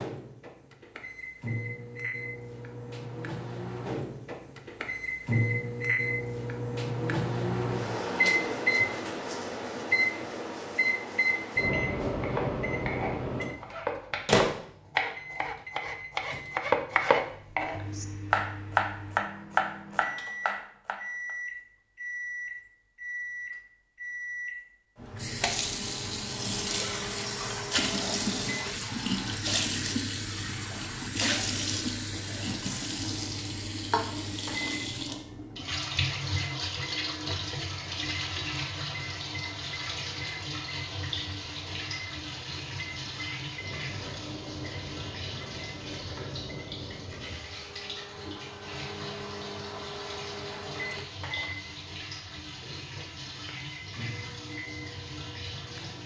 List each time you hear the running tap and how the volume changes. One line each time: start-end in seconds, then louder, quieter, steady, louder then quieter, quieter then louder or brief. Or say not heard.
25.0-56.0 quieter.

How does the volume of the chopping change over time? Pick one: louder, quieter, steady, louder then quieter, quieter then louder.
louder.